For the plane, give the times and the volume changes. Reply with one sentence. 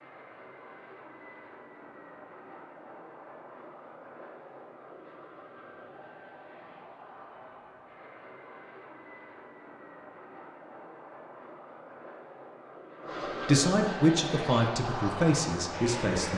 You can hear the plane from 0.0 to 16.3 s, getting louder.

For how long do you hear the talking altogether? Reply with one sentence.
The talking can be heard for 3 seconds in total.